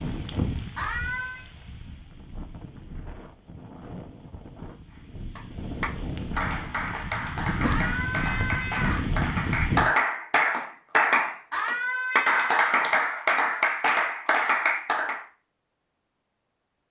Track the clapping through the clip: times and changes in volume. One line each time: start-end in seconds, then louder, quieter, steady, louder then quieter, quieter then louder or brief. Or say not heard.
5.3-15.2 louder.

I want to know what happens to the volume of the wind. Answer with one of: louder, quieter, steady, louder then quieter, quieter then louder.
quieter then louder.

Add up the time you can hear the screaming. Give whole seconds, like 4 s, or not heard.
3 s.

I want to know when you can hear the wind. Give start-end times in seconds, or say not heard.
0.0-9.9.